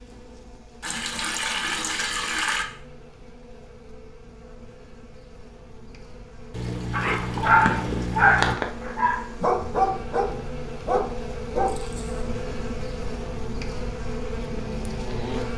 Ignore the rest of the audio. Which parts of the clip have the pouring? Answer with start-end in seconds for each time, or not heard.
0.8-2.6, 6.5-8.6, 11.7-12.2.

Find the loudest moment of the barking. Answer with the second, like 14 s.
8 s.